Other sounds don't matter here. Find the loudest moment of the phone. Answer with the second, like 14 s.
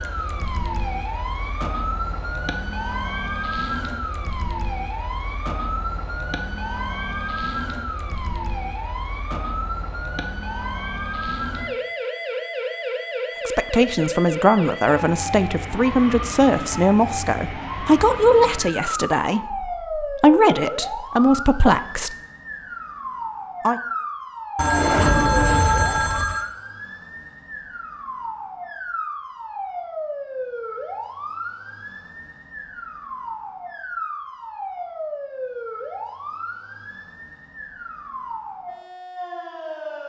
25 s.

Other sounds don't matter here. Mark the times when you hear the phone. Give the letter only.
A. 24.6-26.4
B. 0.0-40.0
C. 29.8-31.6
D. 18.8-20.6
A.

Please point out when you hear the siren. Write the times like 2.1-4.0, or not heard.
0.0-40.0.